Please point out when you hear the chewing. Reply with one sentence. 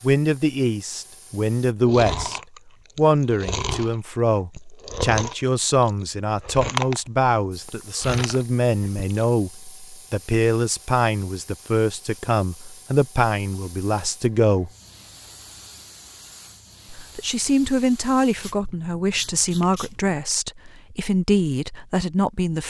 You can hear the chewing from 1.8 to 9.2 s.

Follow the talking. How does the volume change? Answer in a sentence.
The loudness of the talking stays about the same.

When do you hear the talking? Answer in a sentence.
The talking can be heard from 0.0 to 14.7 s and from 16.9 to 22.6 s.